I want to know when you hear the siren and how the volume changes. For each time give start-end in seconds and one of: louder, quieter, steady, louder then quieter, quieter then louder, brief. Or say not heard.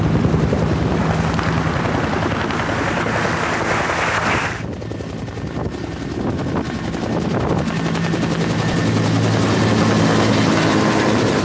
not heard.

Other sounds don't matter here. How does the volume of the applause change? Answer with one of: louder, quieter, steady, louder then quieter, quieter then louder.
louder.